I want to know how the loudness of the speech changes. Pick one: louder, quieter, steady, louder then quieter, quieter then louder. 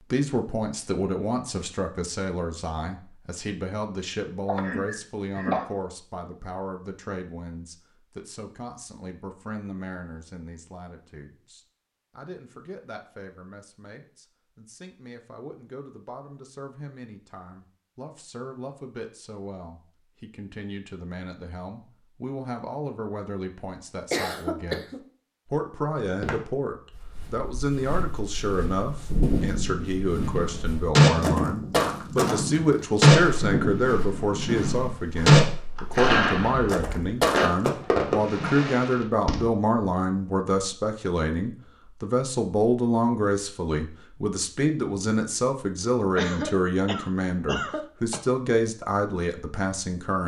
quieter then louder.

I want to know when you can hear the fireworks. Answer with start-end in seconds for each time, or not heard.
29.1-39.5.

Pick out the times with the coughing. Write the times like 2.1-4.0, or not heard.
4.5-5.7, 24.1-25.0, 46.1-48.2.